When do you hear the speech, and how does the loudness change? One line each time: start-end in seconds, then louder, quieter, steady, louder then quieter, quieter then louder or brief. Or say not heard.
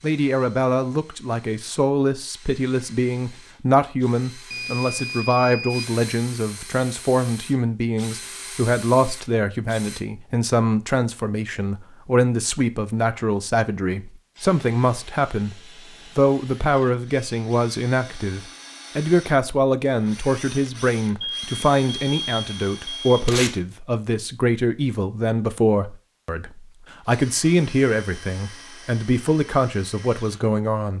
0.0-30.9 steady.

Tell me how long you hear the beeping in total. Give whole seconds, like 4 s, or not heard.
3 s.